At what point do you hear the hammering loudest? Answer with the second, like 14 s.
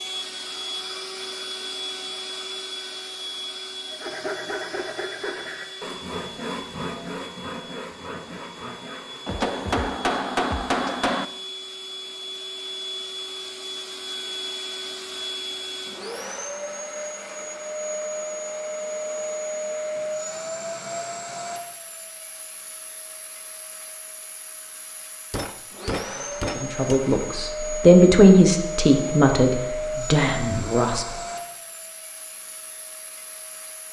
10 s.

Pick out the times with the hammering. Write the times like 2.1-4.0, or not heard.
9.2-11.2, 25.3-27.1.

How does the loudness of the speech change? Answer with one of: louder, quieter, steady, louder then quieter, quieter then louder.
louder then quieter.